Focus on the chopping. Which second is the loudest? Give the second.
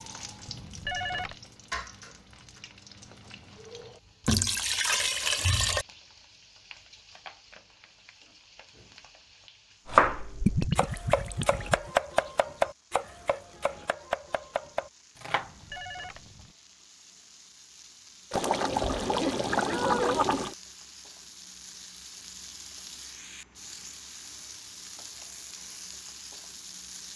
10 s.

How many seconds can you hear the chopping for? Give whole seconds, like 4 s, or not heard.
6 s.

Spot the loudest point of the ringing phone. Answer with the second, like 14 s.
1 s.